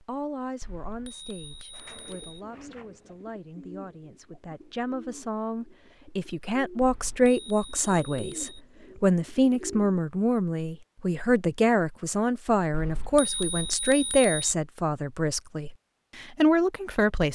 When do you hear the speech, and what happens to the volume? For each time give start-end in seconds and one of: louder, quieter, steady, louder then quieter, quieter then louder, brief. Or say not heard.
0.0-17.3 louder.